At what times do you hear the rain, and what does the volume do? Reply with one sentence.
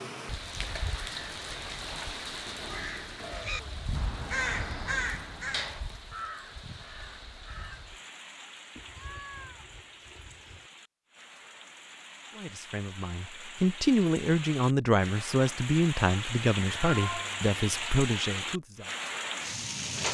You can hear the rain from 0.0 to 20.0 s, getting quieter then louder.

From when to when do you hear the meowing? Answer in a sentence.
You can hear the meowing from 3.2 to 3.6 s, from 8.8 to 10.7 s and from 16.6 to 17.8 s.